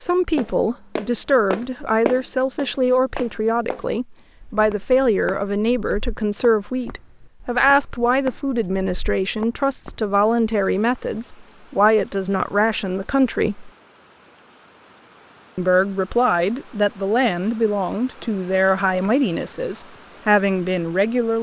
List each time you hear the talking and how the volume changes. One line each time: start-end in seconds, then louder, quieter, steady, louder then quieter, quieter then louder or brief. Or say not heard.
0.0-13.7 steady
15.6-21.3 steady.